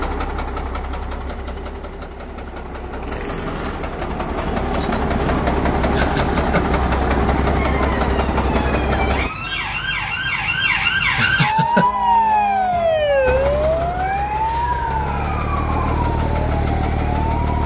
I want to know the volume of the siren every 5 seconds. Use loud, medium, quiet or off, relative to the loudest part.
off, medium, loud, medium.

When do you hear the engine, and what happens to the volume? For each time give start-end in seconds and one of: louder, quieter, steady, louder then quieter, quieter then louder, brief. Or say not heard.
0.0-9.3 louder
13.2-17.6 louder.